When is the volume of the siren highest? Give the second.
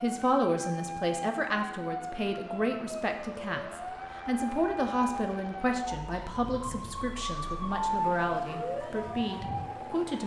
8 s.